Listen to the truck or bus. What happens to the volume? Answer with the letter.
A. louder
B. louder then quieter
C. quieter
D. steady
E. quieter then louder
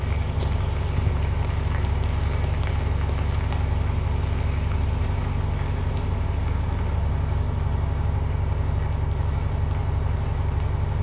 D.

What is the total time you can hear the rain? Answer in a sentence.
You can hear the rain for 11 seconds altogether.